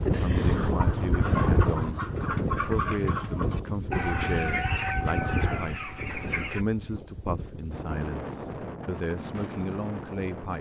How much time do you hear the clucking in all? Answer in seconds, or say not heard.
6 s.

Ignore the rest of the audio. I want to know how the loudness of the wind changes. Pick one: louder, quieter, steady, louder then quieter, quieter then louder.
quieter.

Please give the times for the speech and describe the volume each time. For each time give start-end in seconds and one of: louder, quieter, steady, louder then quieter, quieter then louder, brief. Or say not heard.
0.1-10.5 steady.